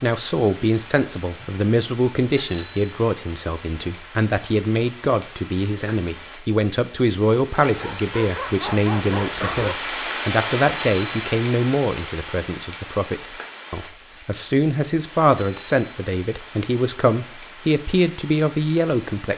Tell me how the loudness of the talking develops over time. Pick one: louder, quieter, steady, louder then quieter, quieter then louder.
steady.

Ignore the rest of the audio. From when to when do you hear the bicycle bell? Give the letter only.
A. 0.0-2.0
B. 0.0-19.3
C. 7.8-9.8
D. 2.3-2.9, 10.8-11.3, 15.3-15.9
D.